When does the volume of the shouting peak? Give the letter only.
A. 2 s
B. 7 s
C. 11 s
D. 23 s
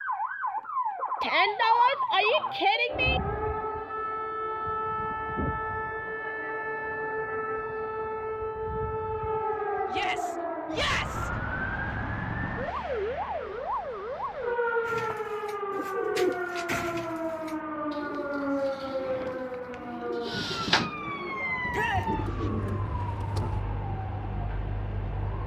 A.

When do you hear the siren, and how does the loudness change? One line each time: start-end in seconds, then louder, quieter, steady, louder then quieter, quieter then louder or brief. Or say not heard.
0.0-25.4 steady.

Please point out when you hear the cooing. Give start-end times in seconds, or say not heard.
14.8-23.6.